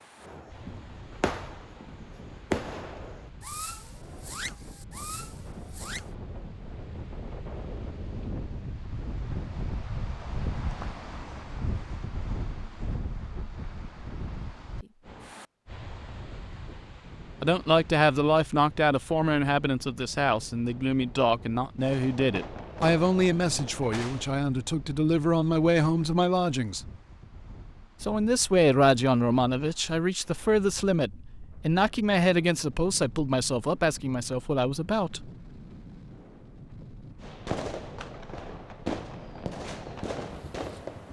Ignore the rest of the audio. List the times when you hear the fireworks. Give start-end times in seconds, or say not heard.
0.2-6.1, 21.8-24.4, 37.2-41.0.